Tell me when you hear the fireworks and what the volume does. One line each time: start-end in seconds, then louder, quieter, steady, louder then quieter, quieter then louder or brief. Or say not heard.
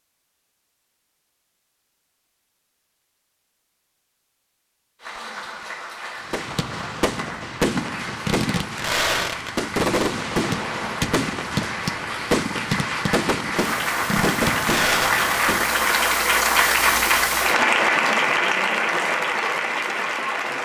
6.2-15.8 steady.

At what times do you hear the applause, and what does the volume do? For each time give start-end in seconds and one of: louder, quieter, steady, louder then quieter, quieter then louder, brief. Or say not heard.
5.0-20.6 louder.